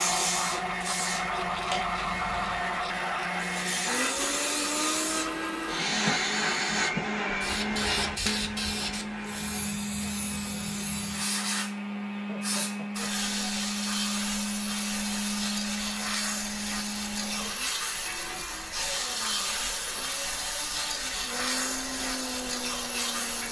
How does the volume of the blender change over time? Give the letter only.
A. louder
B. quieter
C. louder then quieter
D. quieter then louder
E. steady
B.